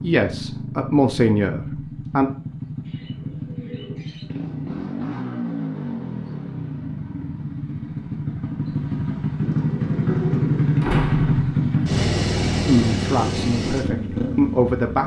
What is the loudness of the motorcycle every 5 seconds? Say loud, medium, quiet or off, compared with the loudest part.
medium, medium, loud.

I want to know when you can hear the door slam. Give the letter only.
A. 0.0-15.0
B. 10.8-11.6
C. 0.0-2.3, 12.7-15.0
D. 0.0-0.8
B.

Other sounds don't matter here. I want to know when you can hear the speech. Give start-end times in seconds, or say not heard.
0.0-2.3, 12.7-15.0.